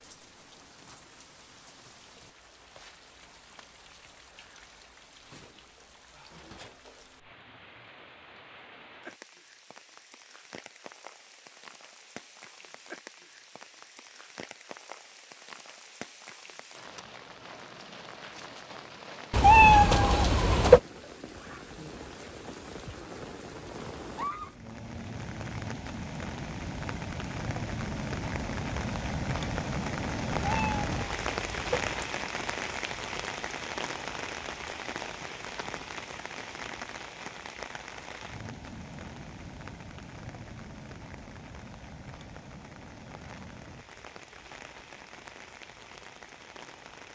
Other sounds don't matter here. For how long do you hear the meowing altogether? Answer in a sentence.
The meowing can be heard for 3 seconds in total.